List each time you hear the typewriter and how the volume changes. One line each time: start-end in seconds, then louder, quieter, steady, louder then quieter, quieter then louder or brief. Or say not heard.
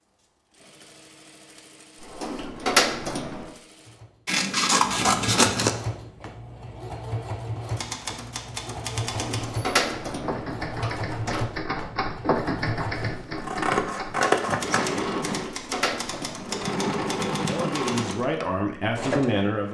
7.7-18.2 louder then quieter.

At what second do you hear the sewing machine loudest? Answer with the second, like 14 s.
17 s.